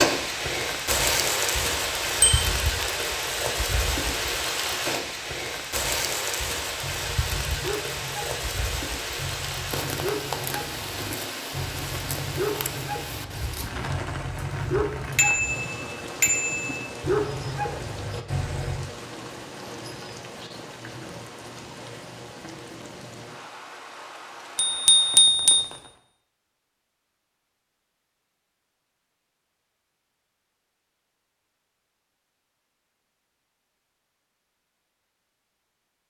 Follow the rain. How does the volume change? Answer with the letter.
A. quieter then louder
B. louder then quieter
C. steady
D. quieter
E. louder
D.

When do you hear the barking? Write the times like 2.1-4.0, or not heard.
6.8-15.3, 17.0-18.8.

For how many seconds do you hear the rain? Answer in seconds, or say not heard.
26 s.